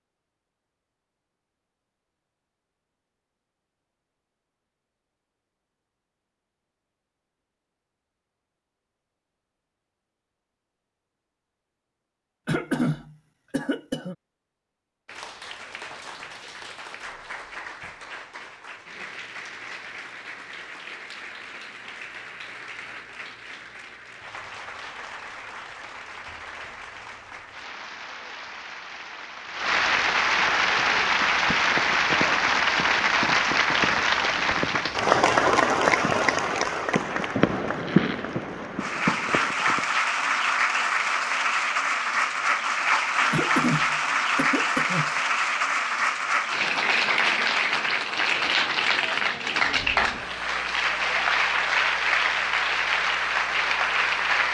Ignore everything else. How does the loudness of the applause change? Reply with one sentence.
The loudness of the applause goes up.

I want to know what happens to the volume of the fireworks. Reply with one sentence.
The loudness of the fireworks goes up, then down.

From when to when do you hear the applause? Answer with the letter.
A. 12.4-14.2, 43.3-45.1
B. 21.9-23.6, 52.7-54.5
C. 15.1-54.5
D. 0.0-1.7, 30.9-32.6
C.